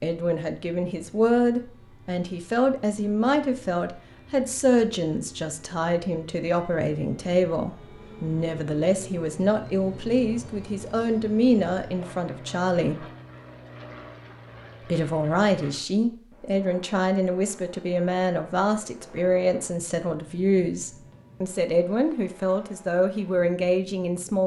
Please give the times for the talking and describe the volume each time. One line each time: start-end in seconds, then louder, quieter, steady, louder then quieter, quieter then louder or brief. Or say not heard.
0.0-13.1 steady
14.8-24.4 steady.